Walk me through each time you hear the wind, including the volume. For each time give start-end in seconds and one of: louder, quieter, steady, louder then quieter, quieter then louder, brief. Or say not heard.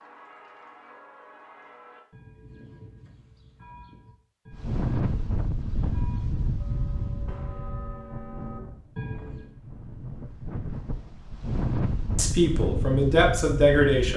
4.5-14.1 quieter then louder.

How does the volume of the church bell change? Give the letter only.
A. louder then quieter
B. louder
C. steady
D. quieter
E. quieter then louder
B.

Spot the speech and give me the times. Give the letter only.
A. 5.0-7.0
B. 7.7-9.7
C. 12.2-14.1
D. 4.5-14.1
C.